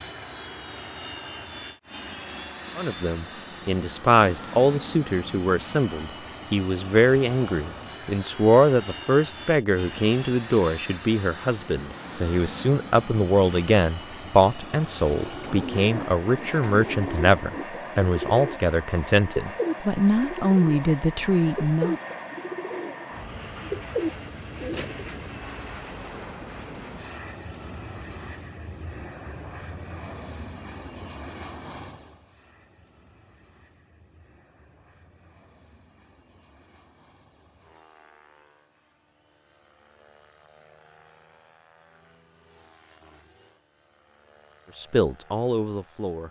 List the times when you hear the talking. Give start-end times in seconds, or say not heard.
2.8-21.9, 44.8-46.2.